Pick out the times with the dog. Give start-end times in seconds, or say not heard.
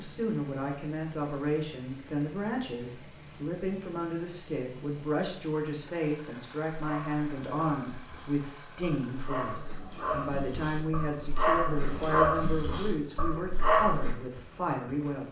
6.8-14.2.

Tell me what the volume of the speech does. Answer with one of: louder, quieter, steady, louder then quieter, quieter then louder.
steady.